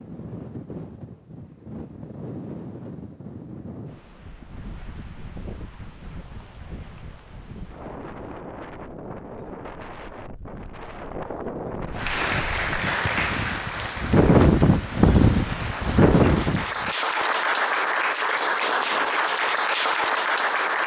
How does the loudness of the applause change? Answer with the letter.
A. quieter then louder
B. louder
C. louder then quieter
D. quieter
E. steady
A.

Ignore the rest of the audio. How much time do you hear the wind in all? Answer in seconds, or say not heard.
17 s.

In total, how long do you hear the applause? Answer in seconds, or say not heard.
9 s.